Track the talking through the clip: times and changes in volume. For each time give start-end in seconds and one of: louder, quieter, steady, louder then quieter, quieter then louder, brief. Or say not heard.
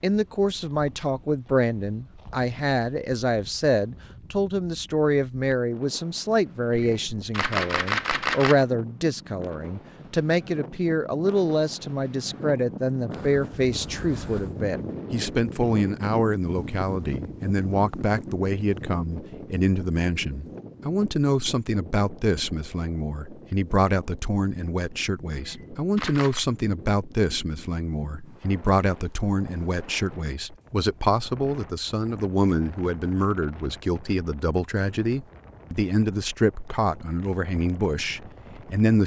0.0-39.0 steady.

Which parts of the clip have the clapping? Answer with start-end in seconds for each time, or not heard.
not heard.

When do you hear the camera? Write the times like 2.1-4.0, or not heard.
6.8-8.7, 25.4-26.4.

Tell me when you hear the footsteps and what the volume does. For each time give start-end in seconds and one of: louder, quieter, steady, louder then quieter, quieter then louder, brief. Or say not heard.
not heard.